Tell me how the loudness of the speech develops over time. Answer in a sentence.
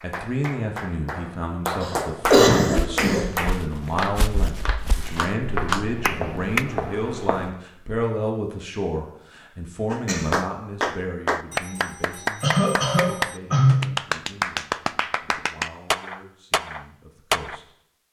The volume of the speech goes down.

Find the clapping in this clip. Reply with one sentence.
The clapping can be heard from 0.0 to 6.7 s and from 9.9 to 17.6 s.